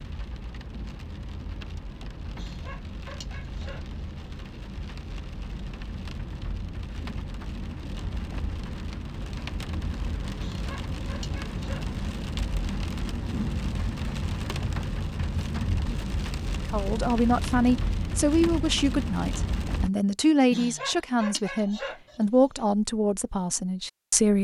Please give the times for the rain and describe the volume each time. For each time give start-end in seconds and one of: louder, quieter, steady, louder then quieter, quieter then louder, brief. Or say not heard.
0.0-19.9 louder.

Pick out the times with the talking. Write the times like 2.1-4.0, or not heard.
16.6-24.4.